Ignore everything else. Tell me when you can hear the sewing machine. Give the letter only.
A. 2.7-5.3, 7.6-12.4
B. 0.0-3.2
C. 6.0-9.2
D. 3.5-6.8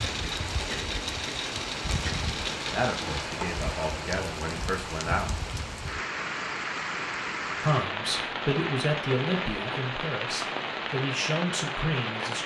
B.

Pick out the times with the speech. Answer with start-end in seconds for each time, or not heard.
2.7-5.3, 7.6-12.4.